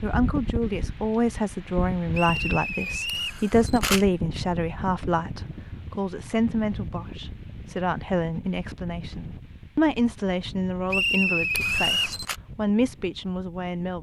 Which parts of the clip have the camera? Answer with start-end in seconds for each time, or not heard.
3.0-4.0, 11.6-12.3.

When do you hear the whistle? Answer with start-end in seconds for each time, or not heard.
2.1-3.4, 10.9-12.2.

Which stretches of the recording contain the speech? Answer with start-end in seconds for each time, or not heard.
0.0-13.9.